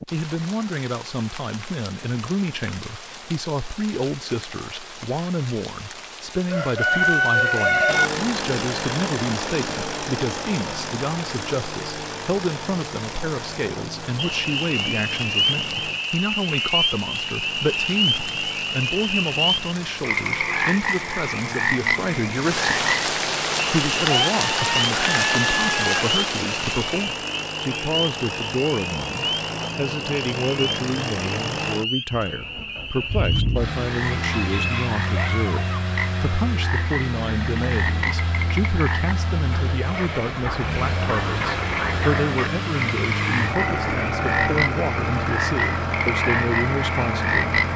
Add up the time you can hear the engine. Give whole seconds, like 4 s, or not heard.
40 s.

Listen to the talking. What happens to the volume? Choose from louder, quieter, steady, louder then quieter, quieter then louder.
steady.